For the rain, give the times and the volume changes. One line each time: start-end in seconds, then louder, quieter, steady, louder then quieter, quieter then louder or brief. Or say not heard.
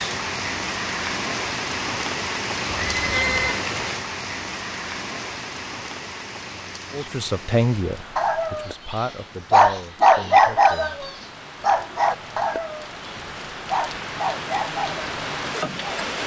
0.0-16.2 quieter then louder.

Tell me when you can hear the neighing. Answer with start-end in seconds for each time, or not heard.
2.6-3.6.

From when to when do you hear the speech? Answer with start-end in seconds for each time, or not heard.
6.9-11.1.